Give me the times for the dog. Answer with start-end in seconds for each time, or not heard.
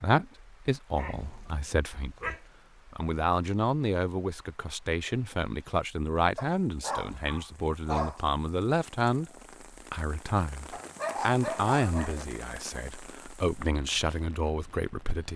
0.9-2.4, 6.3-8.2, 10.7-12.2.